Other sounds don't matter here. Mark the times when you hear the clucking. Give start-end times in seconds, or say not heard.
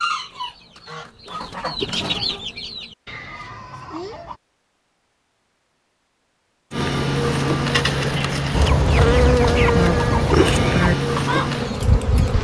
0.0-4.4, 8.5-12.3.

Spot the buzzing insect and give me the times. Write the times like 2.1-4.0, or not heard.
6.7-12.3.